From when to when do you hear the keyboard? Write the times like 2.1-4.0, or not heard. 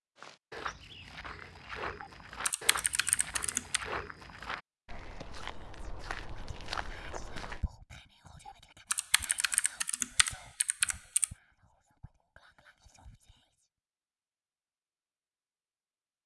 2.0-3.8, 8.4-11.3.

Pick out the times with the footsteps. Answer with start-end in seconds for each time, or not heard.
0.1-7.6.